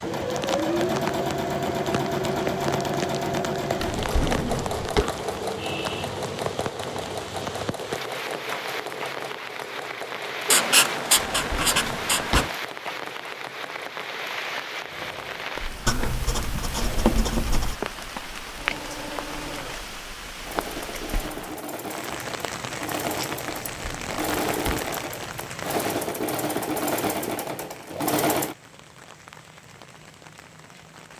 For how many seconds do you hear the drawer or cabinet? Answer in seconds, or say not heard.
4 s.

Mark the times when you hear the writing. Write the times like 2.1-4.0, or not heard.
10.5-12.6, 15.8-17.8.